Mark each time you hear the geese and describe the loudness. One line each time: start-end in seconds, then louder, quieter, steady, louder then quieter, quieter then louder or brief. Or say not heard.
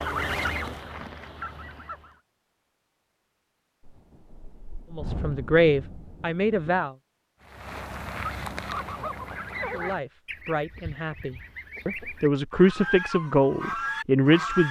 0.0-2.2 brief
7.4-14.6 quieter then louder.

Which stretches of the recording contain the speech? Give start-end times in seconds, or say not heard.
5.0-6.9, 9.7-14.6.